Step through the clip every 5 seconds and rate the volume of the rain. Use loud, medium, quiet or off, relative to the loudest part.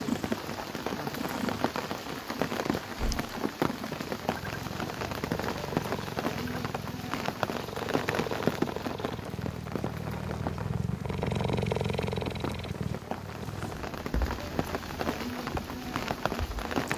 loud, loud, medium, loud.